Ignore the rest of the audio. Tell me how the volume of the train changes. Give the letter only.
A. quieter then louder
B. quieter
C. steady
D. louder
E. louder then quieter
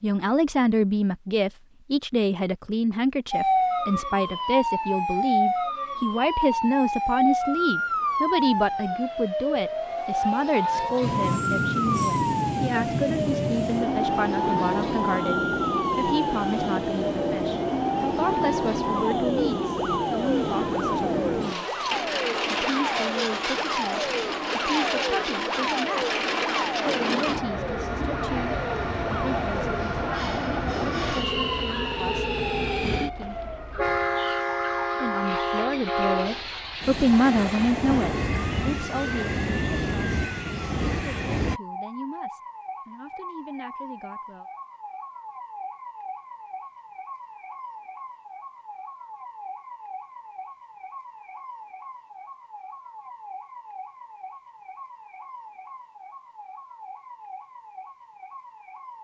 C.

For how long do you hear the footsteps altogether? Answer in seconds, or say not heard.
not heard.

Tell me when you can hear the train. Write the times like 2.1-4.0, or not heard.
11.0-41.6.